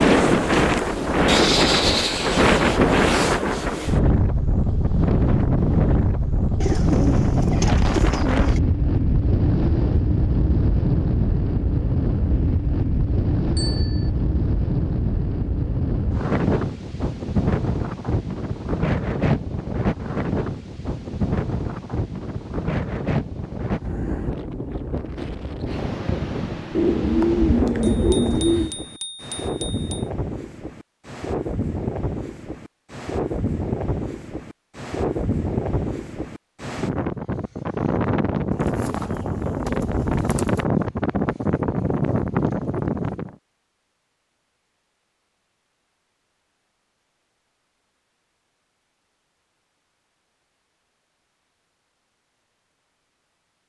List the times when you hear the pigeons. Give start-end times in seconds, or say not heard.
6.6-8.6, 26.8-28.8, 38.5-40.6.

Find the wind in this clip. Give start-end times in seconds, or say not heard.
0.0-43.4.